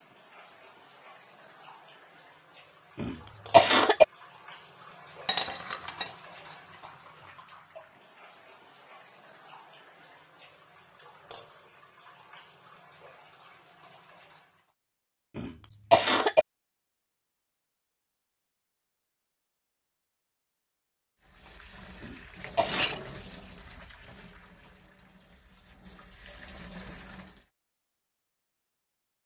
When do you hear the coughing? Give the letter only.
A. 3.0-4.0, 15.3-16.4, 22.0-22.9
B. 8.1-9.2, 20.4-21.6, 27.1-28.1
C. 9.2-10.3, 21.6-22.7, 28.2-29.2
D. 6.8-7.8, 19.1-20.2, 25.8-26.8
A.